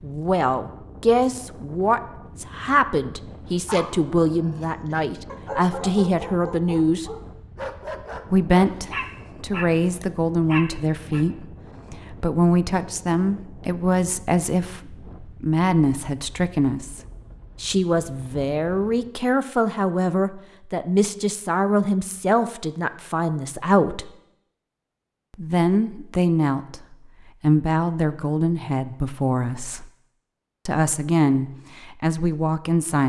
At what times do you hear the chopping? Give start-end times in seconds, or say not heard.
not heard.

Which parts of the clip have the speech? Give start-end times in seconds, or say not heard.
0.0-7.1, 8.3-17.0, 17.6-24.1, 25.4-29.9, 30.6-33.0.